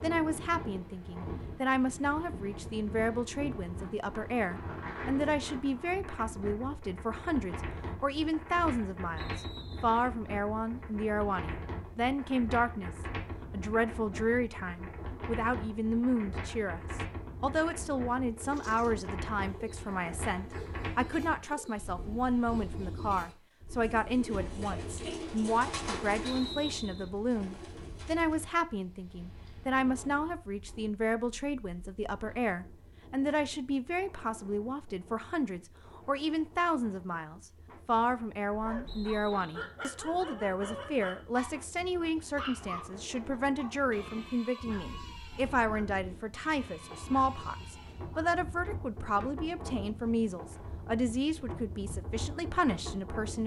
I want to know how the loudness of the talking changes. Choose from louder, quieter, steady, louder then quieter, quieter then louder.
steady.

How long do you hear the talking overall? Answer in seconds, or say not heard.
53 s.